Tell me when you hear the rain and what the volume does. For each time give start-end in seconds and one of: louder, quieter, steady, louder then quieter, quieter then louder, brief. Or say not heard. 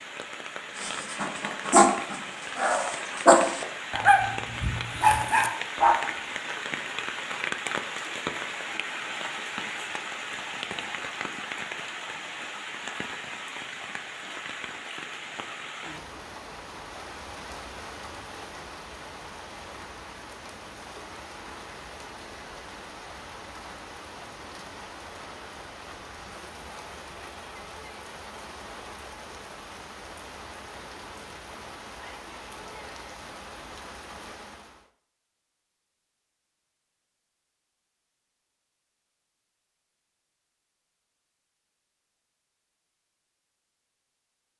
0.0-34.9 quieter.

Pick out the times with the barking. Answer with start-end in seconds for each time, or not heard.
0.8-6.0.